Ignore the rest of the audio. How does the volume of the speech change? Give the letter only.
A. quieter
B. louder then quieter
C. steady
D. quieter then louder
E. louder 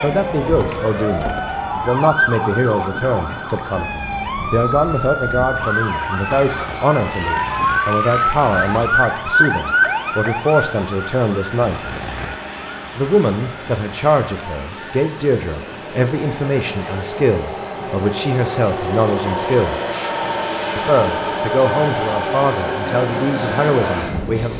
C.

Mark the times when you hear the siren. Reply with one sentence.
The siren can be heard from 0.0 to 17.2 s.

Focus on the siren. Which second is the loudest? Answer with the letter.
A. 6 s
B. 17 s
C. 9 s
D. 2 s
C.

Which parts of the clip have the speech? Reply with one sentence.
You can hear the speech from 0.0 to 11.8 s, from 12.9 to 19.8 s and from 20.8 to 24.5 s.